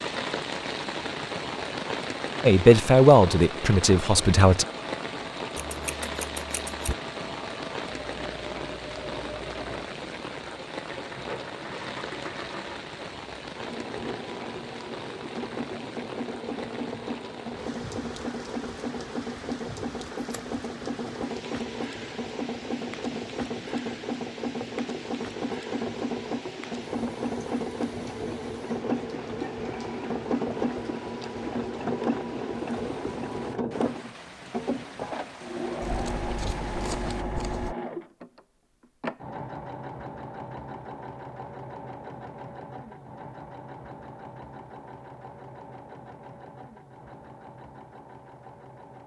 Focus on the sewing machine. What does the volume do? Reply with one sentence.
The loudness of the sewing machine goes up, then down.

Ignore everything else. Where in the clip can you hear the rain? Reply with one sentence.
You can hear the rain from 0.0 to 37.2 s.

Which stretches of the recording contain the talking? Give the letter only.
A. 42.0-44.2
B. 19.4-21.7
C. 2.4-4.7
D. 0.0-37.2
C.